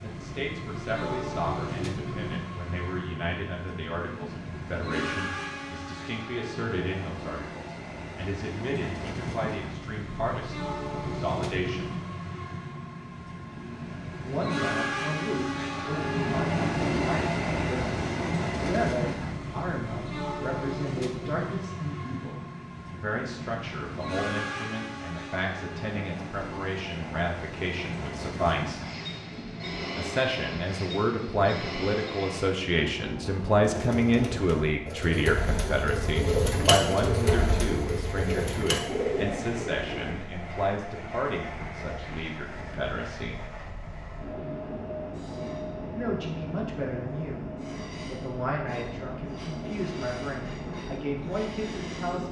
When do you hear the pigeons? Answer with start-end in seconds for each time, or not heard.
33.6-40.1.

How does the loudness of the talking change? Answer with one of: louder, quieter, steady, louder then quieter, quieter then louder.
louder then quieter.